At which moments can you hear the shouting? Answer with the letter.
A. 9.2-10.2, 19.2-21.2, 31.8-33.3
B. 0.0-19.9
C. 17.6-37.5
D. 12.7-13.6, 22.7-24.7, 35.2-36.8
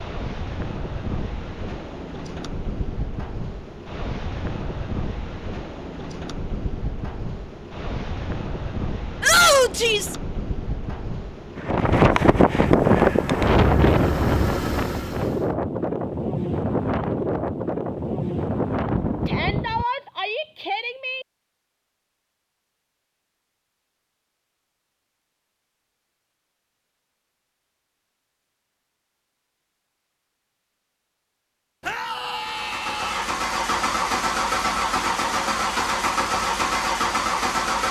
A.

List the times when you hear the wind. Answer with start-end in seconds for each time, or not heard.
0.0-19.9.